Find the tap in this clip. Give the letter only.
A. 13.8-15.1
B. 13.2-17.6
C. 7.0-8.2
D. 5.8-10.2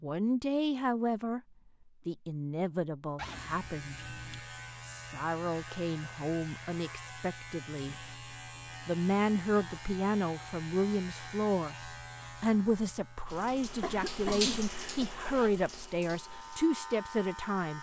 B.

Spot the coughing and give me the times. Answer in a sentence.
You can hear the coughing from 13.8 to 15.1 s.